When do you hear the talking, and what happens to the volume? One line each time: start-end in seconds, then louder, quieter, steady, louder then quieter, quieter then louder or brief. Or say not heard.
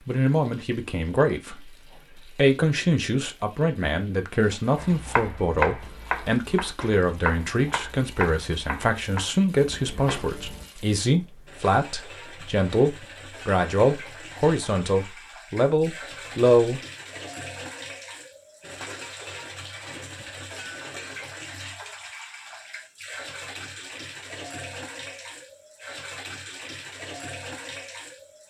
0.1-16.8 steady.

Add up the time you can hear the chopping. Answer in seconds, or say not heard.
6 s.